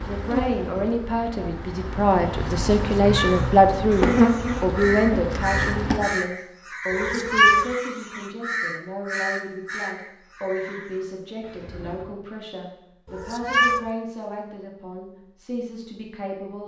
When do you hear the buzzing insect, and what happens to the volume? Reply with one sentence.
The buzzing insect can be heard from 0.0 to 6.0 s, getting louder then quieter.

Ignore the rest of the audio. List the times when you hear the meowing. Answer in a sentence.
You can hear the meowing from 3.0 to 3.5 s, from 6.9 to 7.7 s and from 13.1 to 13.8 s.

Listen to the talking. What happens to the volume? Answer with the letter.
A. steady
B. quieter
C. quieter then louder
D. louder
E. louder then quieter
B.